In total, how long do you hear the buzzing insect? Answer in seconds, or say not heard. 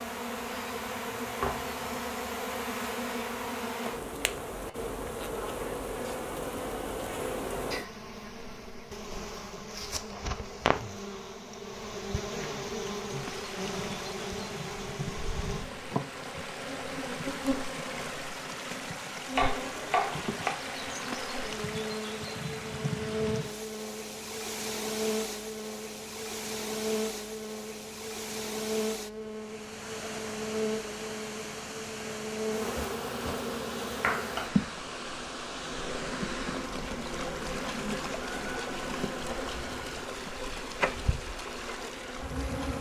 43 s.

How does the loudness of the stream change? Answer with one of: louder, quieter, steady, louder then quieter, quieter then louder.
steady.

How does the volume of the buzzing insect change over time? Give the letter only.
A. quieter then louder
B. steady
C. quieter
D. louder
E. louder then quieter
B.